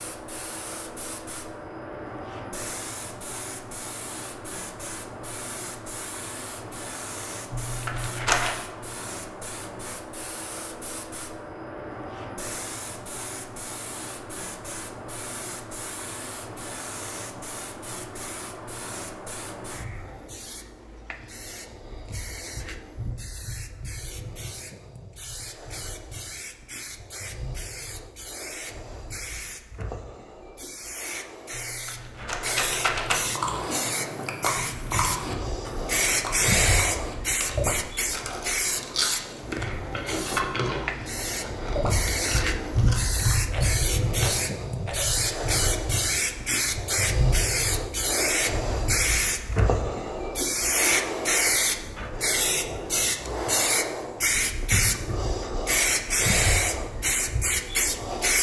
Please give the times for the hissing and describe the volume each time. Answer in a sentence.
You can hear the hissing from 0.0 to 58.3 s, getting louder.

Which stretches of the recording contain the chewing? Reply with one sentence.
The chewing can be heard from 33.0 to 43.4 s.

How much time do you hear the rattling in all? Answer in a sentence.
The rattling can be heard for 4 seconds in total.